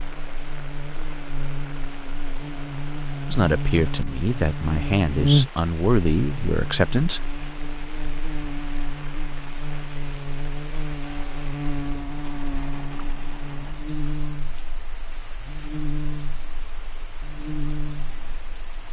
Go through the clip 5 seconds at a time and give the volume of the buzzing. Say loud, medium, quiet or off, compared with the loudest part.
medium, loud, medium, medium.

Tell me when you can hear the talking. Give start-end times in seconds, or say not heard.
3.2-7.4.